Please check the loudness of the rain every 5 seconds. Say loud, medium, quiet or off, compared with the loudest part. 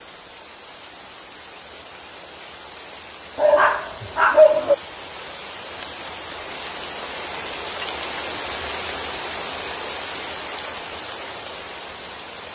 medium, loud, loud.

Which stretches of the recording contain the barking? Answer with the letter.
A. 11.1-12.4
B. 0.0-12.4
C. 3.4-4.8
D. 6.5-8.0
C.